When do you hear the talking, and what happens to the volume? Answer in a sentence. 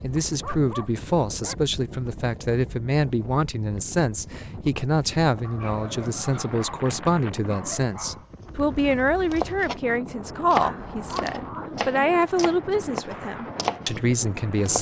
The talking can be heard from 0.0 to 14.7 s, at a steady volume.